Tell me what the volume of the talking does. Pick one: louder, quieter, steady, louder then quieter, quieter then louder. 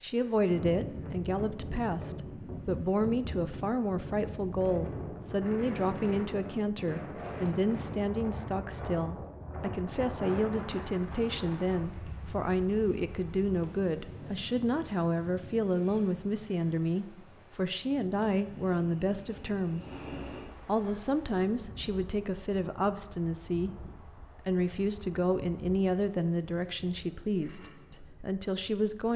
steady.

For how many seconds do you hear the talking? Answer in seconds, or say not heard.
29 s.